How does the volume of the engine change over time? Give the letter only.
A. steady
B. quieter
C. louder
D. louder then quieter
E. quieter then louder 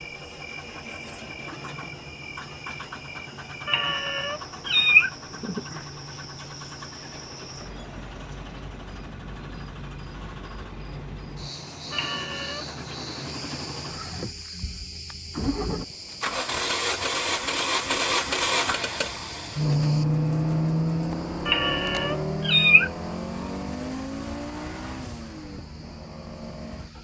D.